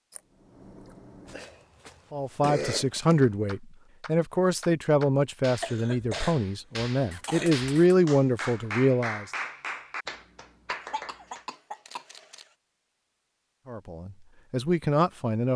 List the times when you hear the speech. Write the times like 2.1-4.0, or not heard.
2.1-9.2, 13.7-15.5.